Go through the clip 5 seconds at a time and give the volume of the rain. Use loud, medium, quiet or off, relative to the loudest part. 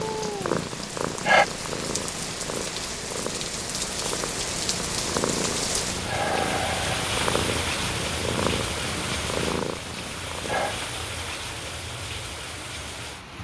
loud, loud, medium.